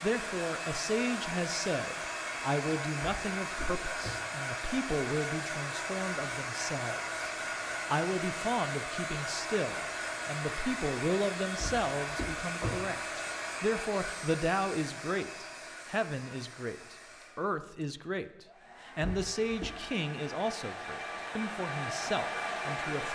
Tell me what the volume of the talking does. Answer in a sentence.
The volume of the talking stays about the same.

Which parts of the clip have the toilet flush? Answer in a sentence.
You can't hear the toilet flush here.